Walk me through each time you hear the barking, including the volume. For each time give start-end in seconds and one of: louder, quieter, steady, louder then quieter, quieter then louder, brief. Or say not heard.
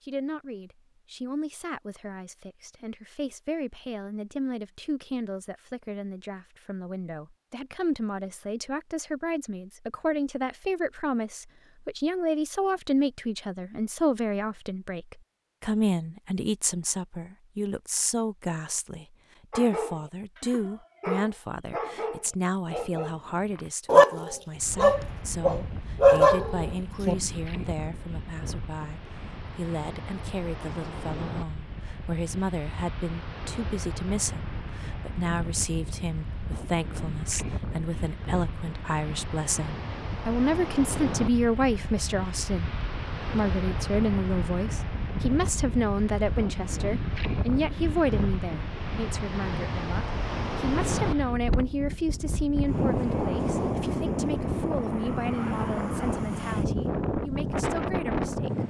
19.5-27.1 louder.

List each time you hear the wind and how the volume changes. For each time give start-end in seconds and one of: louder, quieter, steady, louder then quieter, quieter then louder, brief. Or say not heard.
24.6-58.6 louder.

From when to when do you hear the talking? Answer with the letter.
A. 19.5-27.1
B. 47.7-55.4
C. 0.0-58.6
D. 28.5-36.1
C.